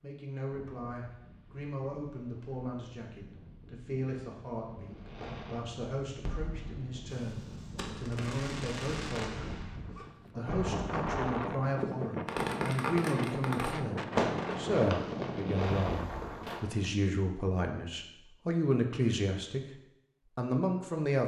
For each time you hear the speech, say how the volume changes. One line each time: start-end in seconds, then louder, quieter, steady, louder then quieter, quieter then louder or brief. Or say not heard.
0.0-19.6 louder
20.4-21.2 brief.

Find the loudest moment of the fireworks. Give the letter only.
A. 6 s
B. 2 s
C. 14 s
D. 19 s
C.